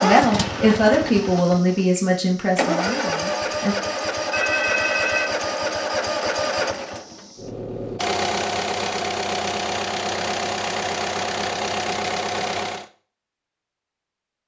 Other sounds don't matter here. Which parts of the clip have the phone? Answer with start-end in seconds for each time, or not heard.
4.3-5.3.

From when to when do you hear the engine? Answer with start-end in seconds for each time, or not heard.
0.0-12.8.